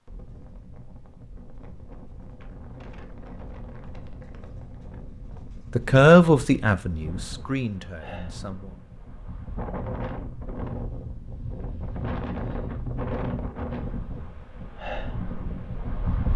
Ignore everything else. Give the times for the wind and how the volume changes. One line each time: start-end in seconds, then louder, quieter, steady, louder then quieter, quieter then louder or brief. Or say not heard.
0.1-16.3 louder.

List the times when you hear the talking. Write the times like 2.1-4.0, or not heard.
5.8-8.8.